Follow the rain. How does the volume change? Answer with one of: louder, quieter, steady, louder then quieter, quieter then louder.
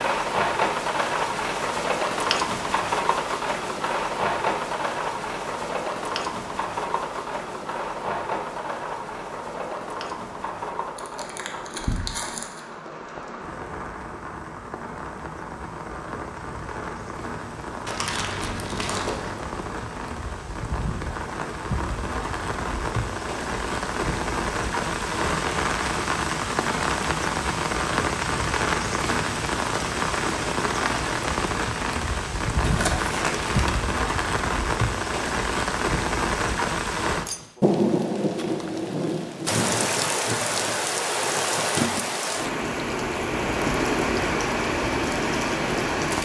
quieter then louder.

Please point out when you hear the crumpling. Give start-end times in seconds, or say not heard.
10.9-12.6, 17.9-19.4, 32.6-33.8.